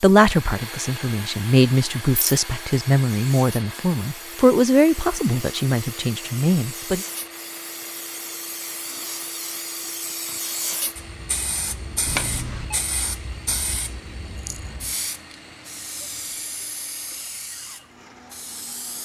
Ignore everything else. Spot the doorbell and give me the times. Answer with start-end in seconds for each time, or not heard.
12.1-12.8.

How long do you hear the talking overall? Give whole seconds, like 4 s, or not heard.
7 s.